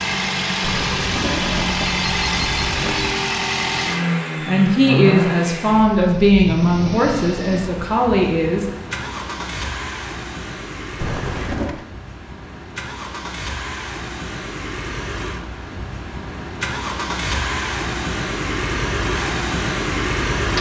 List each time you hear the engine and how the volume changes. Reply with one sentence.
You can hear the engine from 0.0 to 20.5 s, getting quieter then louder.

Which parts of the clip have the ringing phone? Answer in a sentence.
The ringing phone can be heard from 0.6 to 3.1 s and from 10.9 to 11.8 s.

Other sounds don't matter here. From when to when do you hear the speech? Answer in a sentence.
The speech can be heard from 4.5 to 8.7 s.